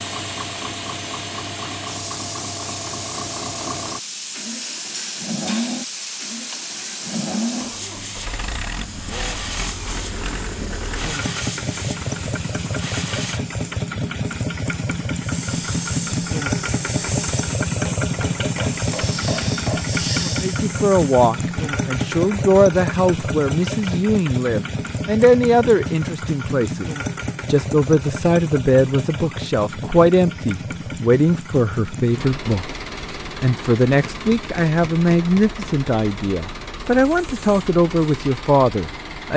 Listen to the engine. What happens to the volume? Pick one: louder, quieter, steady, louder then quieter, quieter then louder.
louder then quieter.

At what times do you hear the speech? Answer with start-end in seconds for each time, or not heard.
20.2-26.9, 27.5-39.3.